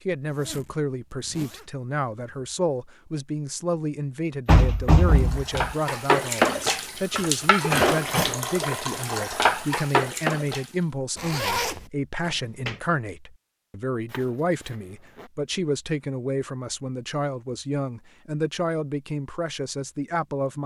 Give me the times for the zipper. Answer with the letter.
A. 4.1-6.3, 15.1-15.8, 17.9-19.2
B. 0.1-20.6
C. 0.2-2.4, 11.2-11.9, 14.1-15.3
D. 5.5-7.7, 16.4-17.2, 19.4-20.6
C.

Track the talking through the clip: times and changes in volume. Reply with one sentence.
You can hear the talking from 0.1 to 20.6 s, at a steady volume.